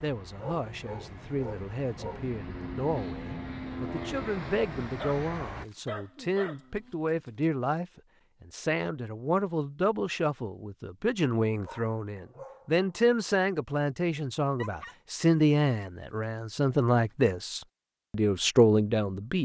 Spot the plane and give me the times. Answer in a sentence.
The plane can be heard from 0.0 to 5.7 s.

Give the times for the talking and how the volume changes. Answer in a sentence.
You can hear the talking from 0.0 to 19.4 s, getting louder.